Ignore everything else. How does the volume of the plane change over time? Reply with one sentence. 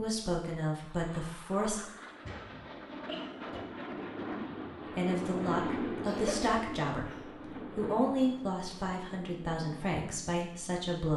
The volume of the plane goes up, then down.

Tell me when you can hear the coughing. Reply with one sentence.
The coughing can be heard from 2.2 to 3.6 s and from 6.0 to 7.2 s.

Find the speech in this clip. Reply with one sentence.
The speech can be heard from 0.0 to 1.8 s and from 5.0 to 11.1 s.